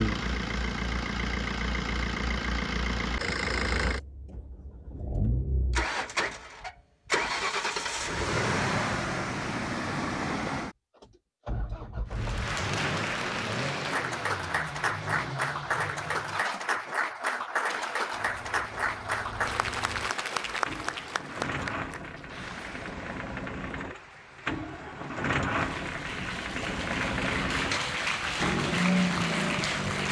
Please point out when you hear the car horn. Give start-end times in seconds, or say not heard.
not heard.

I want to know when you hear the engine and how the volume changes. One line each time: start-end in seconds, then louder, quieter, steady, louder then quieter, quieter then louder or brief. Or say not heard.
0.0-30.0 quieter then louder.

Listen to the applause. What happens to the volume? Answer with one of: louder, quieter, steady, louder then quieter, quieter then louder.
quieter then louder.